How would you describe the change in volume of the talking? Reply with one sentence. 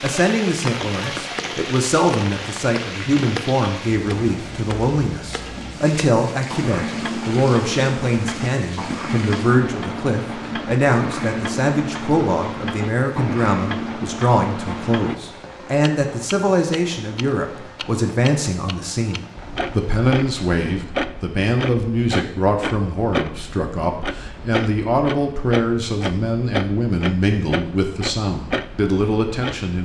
The volume of the talking stays about the same.